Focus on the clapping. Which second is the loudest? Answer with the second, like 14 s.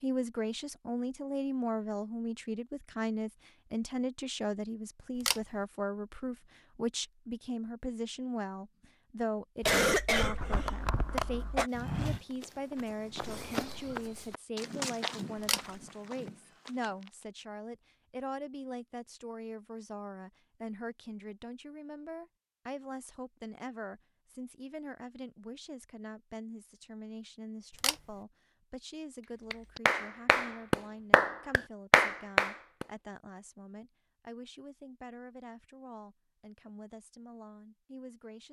32 s.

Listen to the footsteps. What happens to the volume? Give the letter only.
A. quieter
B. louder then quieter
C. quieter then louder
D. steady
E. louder
B.